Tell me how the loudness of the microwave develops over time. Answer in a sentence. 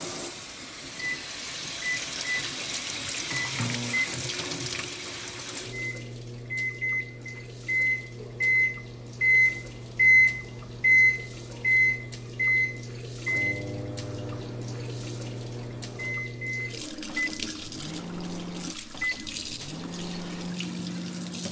The loudness of the microwave goes up, then down.